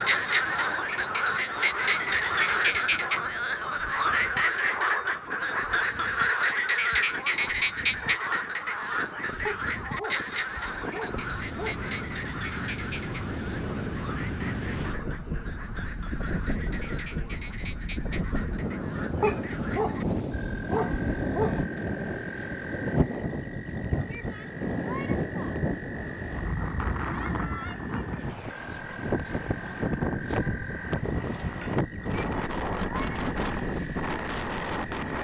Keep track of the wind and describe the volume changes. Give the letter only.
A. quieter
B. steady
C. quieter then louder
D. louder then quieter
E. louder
E.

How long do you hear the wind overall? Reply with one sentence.
You can hear the wind for 35 seconds altogether.